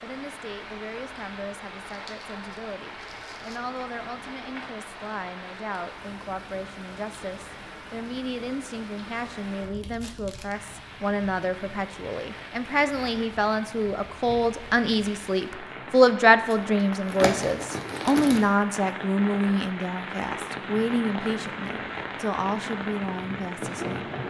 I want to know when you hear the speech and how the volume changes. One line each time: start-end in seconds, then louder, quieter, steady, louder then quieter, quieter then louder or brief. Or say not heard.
0.0-24.1 louder then quieter.